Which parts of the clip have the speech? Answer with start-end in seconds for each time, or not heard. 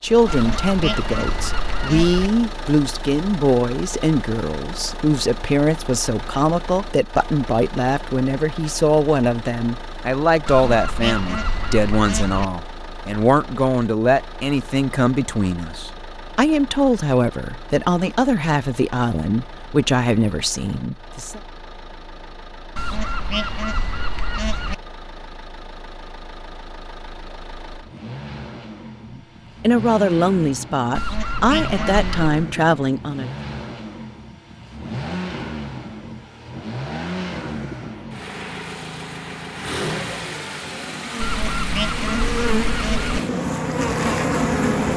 0.0-21.4, 29.1-33.3.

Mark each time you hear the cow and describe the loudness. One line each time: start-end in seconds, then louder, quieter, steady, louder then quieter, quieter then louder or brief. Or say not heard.
not heard.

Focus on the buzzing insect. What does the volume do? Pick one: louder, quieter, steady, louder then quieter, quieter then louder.
louder.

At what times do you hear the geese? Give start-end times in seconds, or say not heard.
0.2-2.3, 10.4-12.4, 22.8-24.8, 30.9-32.4, 41.2-43.2.